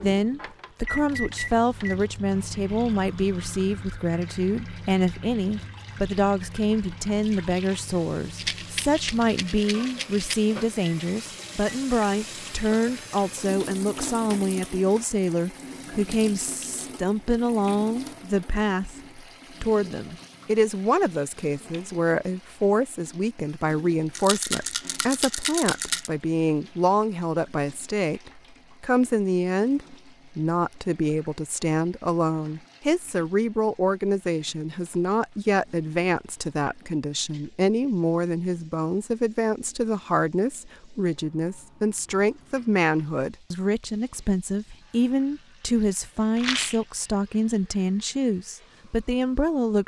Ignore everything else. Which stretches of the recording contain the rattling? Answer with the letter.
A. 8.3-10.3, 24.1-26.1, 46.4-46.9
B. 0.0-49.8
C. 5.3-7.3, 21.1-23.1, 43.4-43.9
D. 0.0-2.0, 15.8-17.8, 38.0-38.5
A.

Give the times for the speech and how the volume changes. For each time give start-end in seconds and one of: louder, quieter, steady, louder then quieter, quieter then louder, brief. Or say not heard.
0.0-49.8 steady.